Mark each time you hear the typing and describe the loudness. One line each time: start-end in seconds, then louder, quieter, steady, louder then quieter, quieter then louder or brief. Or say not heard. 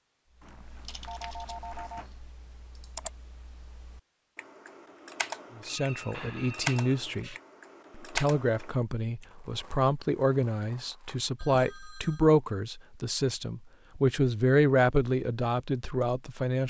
0.4-9.2 louder.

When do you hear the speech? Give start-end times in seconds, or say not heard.
5.5-7.3, 8.0-16.6.